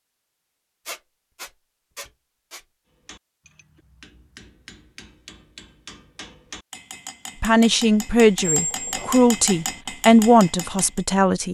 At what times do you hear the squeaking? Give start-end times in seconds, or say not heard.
0.8-2.6, 8.4-9.2.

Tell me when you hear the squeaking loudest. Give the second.
9 s.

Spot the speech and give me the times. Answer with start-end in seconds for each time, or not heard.
7.4-11.5.